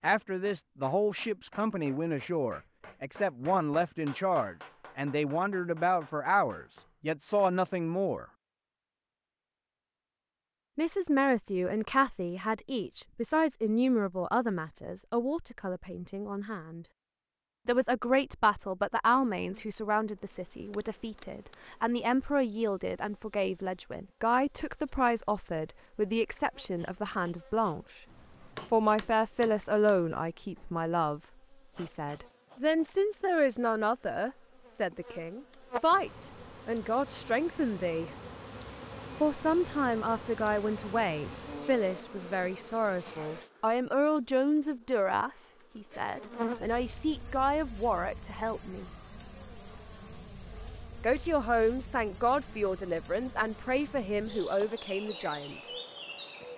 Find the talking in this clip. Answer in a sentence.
The talking can be heard from 0.0 to 8.2 s, from 10.8 to 16.9 s, from 17.6 to 28.0 s, from 28.7 to 38.1 s, from 39.2 to 48.9 s and from 51.0 to 55.7 s.